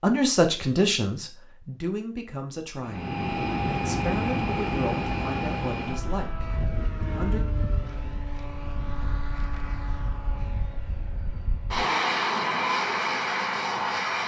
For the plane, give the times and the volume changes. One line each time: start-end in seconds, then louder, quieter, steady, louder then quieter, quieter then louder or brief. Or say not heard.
2.8-14.2 quieter then louder.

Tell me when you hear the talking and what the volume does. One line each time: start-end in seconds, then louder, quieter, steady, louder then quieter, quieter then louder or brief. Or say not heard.
0.0-7.4 quieter.